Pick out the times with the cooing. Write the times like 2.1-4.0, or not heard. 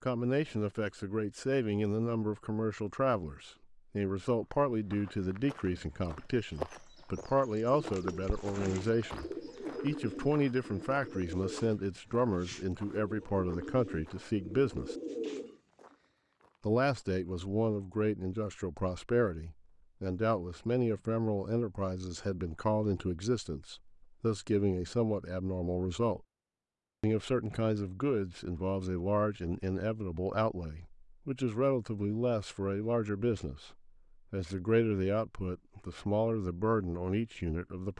7.7-15.6.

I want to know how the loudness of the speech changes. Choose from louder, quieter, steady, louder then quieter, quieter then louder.
steady.